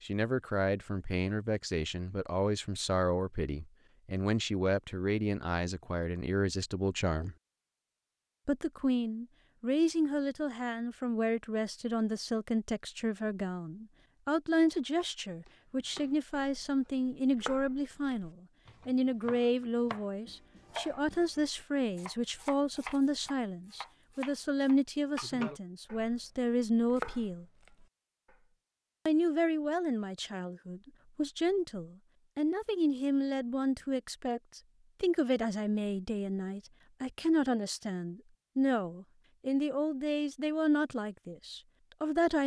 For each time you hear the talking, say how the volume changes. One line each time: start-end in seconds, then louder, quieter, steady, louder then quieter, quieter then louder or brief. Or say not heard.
0.0-7.3 steady
8.4-27.4 steady
29.1-42.4 steady.